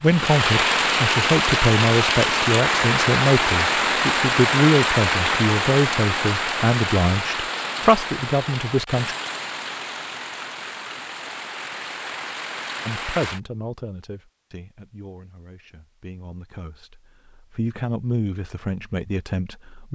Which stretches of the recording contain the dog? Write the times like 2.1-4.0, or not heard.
not heard.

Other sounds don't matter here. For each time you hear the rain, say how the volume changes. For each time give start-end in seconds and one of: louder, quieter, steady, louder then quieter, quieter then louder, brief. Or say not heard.
0.0-13.4 quieter.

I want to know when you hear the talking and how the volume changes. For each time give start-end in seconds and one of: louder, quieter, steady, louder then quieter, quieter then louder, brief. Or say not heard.
0.0-9.2 steady
12.8-19.9 quieter then louder.